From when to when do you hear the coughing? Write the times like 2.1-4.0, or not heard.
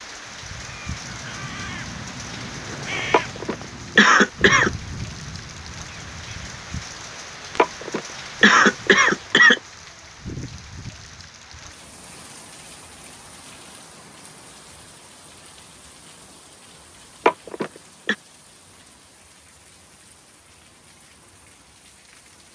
3.1-4.7, 7.5-9.6, 17.2-18.1.